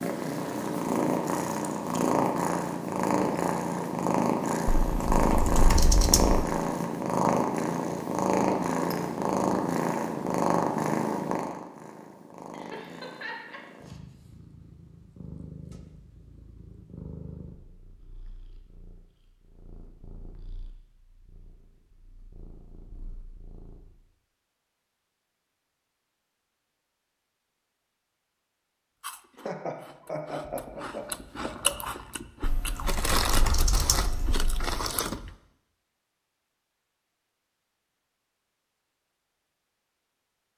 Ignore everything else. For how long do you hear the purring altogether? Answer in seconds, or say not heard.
24 s.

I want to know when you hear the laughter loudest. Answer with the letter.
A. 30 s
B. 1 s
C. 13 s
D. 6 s
A.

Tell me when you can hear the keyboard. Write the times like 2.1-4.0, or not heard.
4.8-6.5, 32.4-34.8.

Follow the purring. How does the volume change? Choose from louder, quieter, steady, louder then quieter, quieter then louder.
quieter.